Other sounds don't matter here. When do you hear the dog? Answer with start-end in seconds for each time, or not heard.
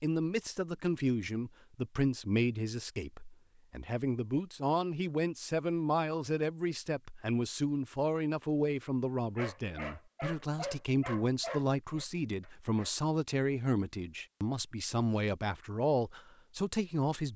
9.3-12.9.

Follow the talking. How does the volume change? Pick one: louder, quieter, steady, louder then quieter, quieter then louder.
steady.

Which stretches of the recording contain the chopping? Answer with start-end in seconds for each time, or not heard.
not heard.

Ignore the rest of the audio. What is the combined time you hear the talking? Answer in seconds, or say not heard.
17 s.